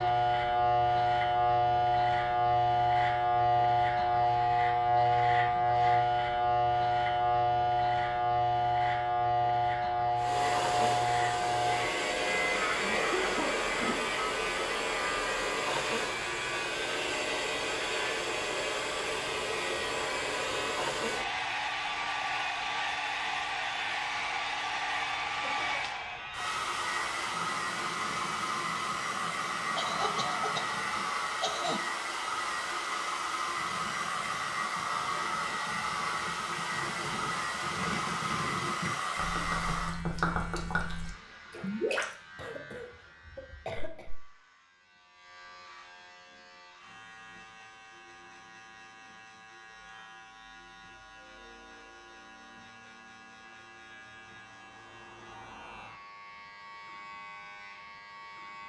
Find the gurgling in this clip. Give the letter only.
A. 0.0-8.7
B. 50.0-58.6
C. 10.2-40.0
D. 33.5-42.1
D.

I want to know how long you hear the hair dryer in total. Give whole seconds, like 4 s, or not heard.
30 s.